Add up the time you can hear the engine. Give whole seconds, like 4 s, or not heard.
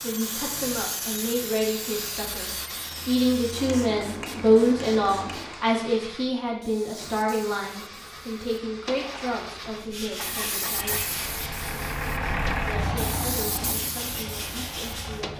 15 s.